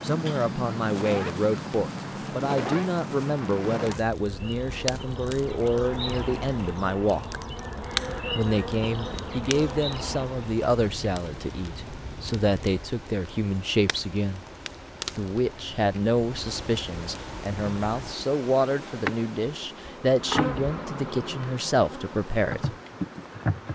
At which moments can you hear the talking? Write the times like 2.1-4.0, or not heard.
0.0-7.4, 8.3-14.4, 15.2-22.7.